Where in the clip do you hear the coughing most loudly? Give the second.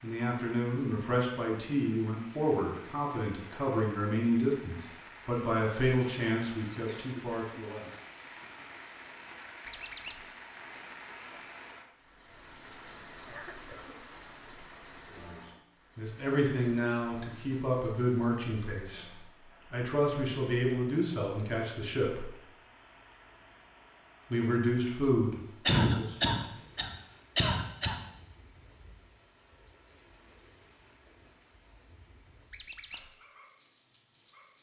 26 s.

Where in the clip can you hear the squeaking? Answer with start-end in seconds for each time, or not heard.
9.7-10.2, 32.5-33.1.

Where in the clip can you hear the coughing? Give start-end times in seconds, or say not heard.
6.8-8.5, 13.2-13.9, 25.6-28.1.